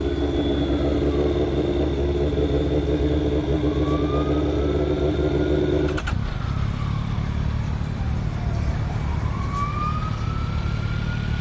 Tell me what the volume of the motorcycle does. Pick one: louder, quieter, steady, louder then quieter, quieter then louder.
quieter.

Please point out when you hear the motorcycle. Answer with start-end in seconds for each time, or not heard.
0.0-11.3.